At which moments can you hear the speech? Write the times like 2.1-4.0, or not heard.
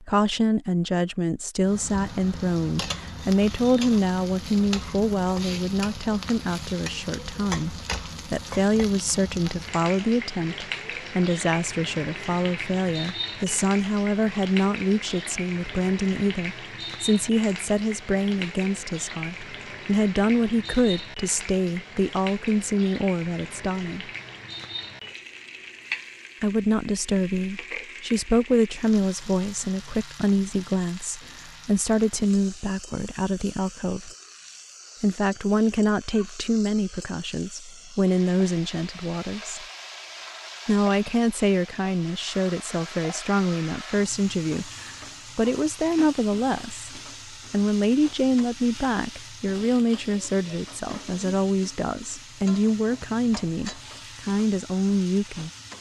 0.0-24.1, 26.4-34.1, 35.0-39.6, 40.6-55.5.